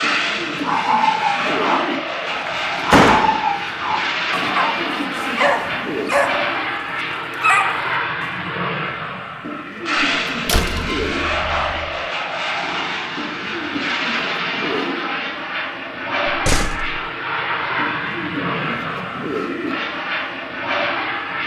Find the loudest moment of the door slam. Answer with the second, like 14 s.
3 s.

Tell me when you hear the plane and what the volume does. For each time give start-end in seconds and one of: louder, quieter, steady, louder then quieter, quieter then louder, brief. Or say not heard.
0.0-21.4 steady.